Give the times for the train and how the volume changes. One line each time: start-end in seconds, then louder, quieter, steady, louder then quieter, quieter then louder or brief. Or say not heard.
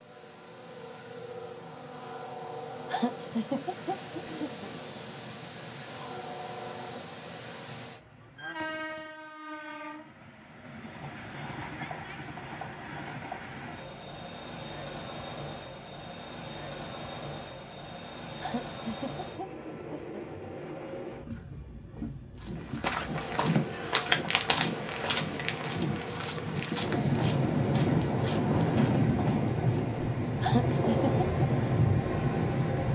0.0-32.9 louder.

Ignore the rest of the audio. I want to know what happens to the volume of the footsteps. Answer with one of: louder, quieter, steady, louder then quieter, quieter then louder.
quieter.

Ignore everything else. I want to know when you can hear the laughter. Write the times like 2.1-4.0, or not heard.
2.9-4.7, 18.4-20.2, 30.4-31.2.